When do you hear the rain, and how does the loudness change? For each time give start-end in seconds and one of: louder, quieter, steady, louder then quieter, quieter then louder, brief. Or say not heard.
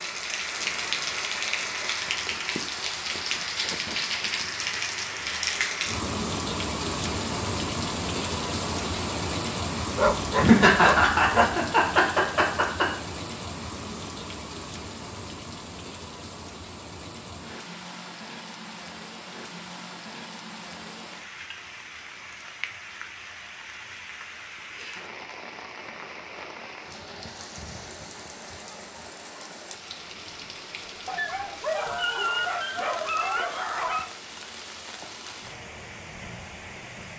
0.0-37.1 quieter.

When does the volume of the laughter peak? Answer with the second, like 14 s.
11 s.